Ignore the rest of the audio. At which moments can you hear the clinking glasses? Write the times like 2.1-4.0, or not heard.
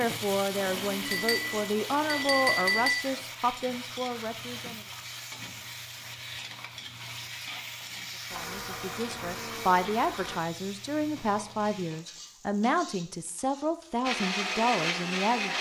1.1-3.0.